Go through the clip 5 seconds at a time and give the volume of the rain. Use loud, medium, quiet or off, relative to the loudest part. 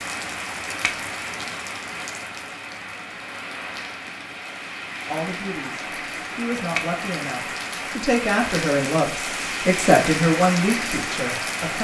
medium, loud, loud.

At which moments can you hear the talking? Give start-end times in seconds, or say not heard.
5.0-11.7.